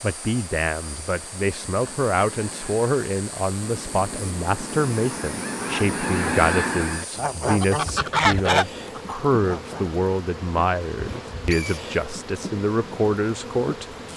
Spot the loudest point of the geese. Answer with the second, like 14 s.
8 s.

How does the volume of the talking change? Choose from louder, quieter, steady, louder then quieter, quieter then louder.
steady.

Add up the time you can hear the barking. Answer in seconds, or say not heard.
not heard.